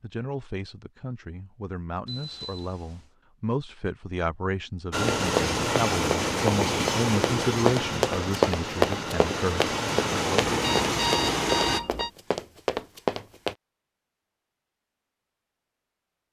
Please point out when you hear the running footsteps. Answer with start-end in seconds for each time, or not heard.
5.2-13.6.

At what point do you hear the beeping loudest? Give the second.
11 s.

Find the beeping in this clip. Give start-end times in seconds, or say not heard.
2.0-3.1, 10.5-12.1.